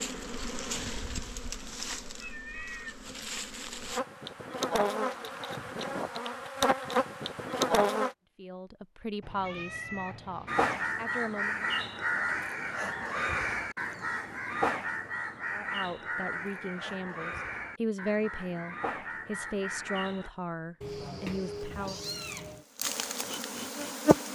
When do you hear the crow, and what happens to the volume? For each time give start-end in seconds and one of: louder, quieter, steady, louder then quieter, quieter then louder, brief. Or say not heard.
10.4-20.3 quieter.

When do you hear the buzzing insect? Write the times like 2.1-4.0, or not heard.
0.0-8.2, 20.9-24.3.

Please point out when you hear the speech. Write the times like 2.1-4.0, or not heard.
8.3-11.7, 15.5-22.0.